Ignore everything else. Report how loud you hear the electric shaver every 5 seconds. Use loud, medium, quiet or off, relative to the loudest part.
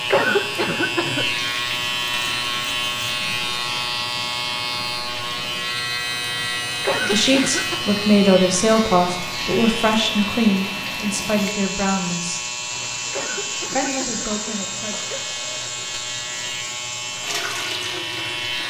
loud, loud, medium, medium.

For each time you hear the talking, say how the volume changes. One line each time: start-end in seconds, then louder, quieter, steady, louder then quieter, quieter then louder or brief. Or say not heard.
7.1-12.4 quieter
13.8-15.0 brief.